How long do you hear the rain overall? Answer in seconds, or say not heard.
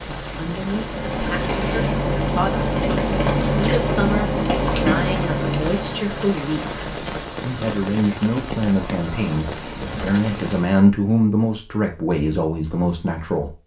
11 s.